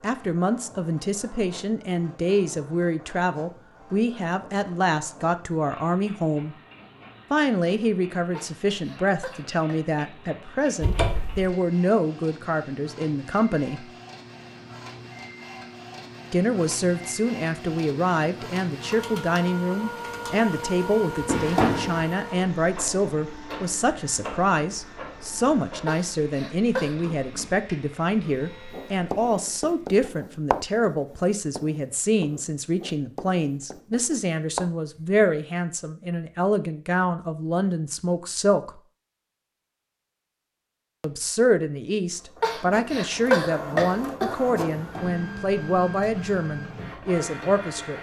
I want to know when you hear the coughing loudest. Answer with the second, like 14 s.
43 s.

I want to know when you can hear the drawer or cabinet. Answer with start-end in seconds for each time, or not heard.
10.8-11.4, 21.2-22.1, 44.6-45.2.